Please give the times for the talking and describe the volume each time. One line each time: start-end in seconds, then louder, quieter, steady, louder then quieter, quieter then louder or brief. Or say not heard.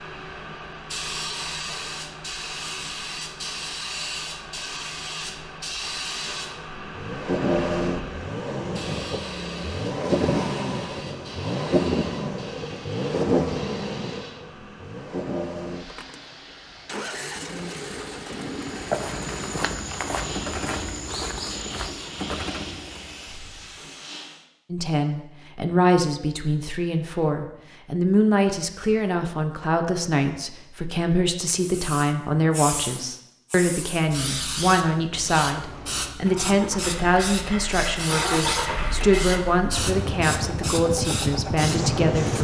24.7-42.3 steady.